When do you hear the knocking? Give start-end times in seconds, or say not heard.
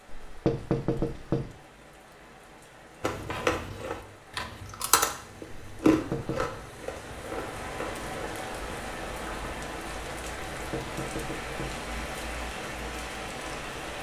0.1-1.5, 5.8-6.5, 10.6-11.8.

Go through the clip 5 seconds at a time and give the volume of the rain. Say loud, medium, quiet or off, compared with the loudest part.
quiet, loud, loud.